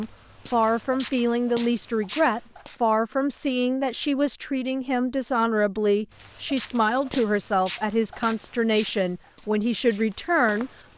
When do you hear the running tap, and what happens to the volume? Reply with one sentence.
The running tap can't be heard in this clip.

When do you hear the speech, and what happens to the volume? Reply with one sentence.
The speech can be heard from 0.0 to 10.7 s, at a steady volume.